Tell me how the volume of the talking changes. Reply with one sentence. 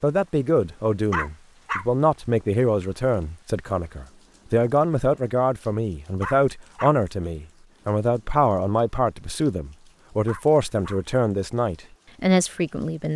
The volume of the talking stays about the same.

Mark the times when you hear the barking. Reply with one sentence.
You can hear the barking from 1.1 to 1.9 s, from 6.2 to 7.0 s and from 10.2 to 11.0 s.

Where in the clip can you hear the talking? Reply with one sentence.
You can hear the talking from 0.0 to 13.1 s.